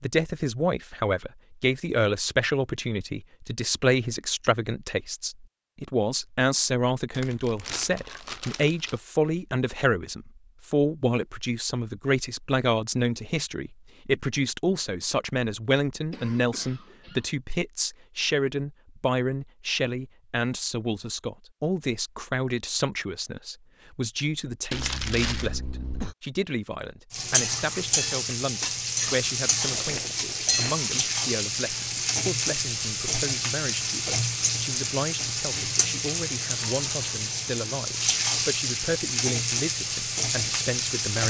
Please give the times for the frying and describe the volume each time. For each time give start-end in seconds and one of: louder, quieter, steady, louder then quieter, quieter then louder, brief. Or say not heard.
27.1-41.2 steady.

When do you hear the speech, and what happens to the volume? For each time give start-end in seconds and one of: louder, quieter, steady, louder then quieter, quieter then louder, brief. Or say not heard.
0.0-41.2 quieter.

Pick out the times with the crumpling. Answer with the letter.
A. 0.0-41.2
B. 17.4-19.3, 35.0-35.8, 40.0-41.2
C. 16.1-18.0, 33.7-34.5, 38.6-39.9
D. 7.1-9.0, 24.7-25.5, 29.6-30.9
D.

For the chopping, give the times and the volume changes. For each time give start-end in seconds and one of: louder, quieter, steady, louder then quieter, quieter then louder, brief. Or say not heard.
not heard.